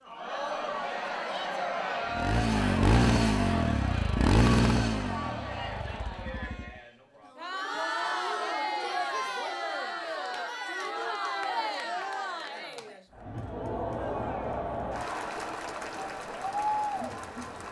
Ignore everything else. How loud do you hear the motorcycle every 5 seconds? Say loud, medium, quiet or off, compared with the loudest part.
loud, quiet, off, off.